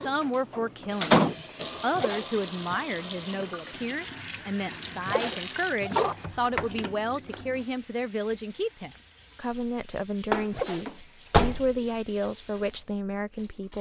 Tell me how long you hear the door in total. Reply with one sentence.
The door can be heard for 4 seconds in total.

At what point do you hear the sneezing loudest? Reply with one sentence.
The loudest moment of the sneezing is at 6 seconds.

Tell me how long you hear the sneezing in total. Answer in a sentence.
The sneezing can be heard for 2 seconds in total.